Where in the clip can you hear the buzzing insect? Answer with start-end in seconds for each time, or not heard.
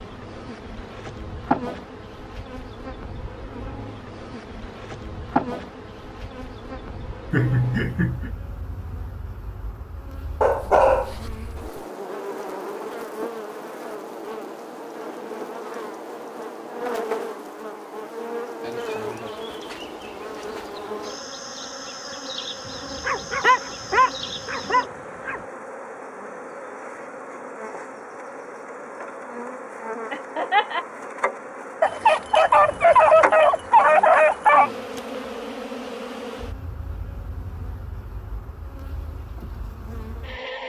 0.0-40.6.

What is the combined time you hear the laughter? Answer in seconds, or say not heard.
2 s.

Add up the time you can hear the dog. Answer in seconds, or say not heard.
7 s.